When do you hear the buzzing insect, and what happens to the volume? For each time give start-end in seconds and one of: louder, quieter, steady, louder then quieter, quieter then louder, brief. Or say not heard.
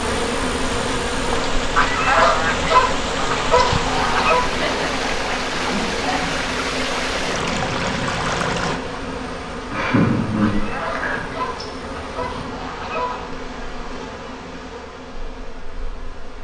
0.0-16.3 quieter.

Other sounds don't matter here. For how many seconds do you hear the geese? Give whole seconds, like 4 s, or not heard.
6 s.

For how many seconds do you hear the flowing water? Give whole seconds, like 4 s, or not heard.
9 s.